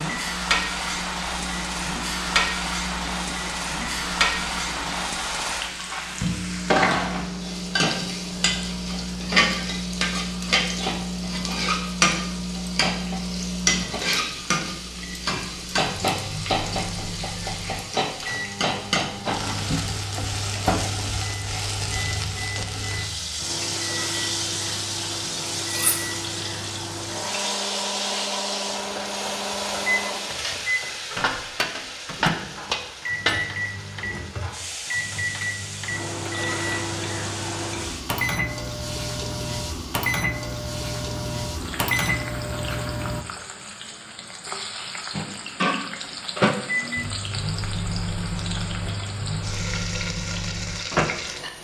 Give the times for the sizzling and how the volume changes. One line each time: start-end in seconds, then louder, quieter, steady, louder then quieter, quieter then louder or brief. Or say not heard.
0.0-51.6 quieter.